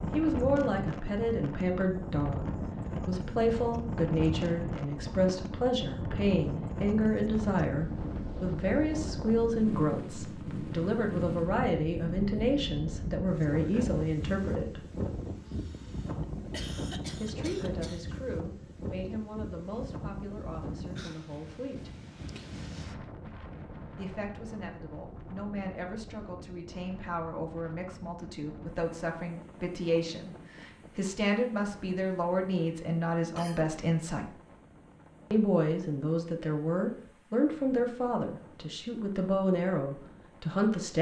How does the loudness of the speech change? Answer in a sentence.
The loudness of the speech goes down, then up.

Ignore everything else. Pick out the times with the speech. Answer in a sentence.
You can hear the speech from 0.1 to 14.8 s, from 17.1 to 21.9 s, from 23.9 to 34.3 s and from 35.3 to 40.9 s.